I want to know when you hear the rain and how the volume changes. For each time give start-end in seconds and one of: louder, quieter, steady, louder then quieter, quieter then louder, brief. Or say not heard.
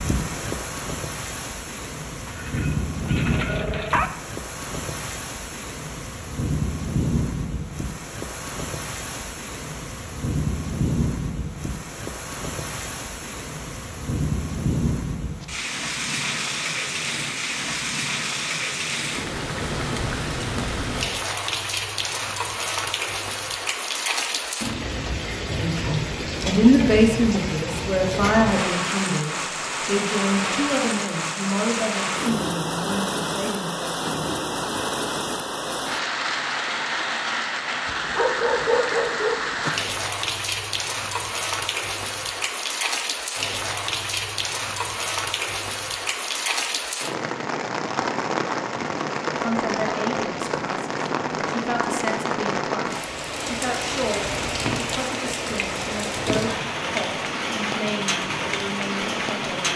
0.0-59.7 steady.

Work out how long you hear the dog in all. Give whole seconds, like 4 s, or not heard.
4 s.